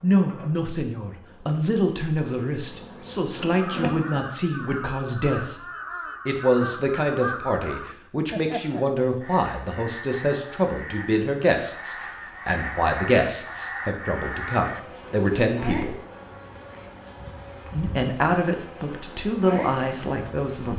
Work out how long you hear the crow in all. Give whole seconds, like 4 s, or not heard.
11 s.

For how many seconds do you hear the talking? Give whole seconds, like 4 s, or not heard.
18 s.